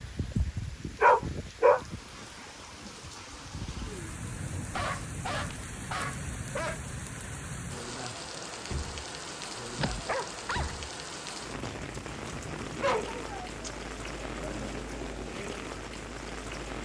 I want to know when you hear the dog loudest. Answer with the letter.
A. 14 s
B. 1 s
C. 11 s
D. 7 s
B.